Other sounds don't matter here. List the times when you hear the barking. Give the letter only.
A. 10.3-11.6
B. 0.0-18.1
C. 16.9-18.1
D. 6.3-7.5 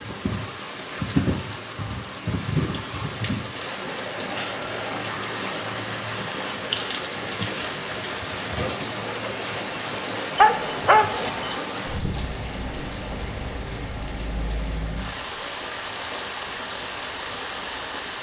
A.